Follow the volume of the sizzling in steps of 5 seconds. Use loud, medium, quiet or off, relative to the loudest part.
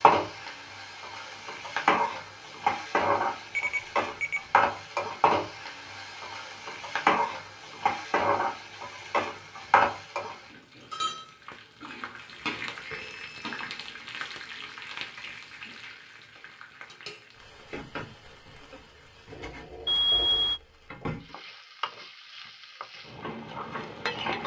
loud, loud, medium, quiet, medium.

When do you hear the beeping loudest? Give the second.
20 s.